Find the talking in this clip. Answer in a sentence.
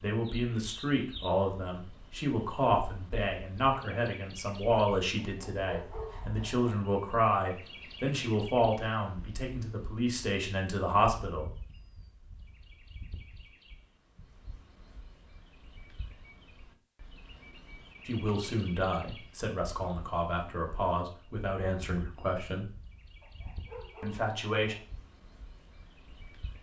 You can hear the talking from 0.0 to 11.5 s, from 18.1 to 22.7 s and from 24.0 to 24.8 s.